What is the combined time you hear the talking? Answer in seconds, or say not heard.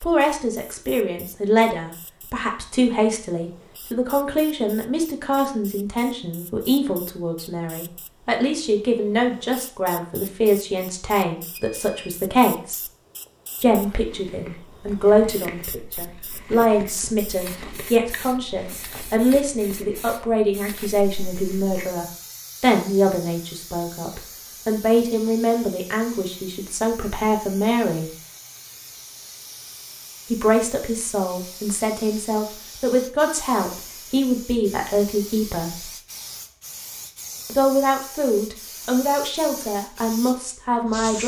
37 s.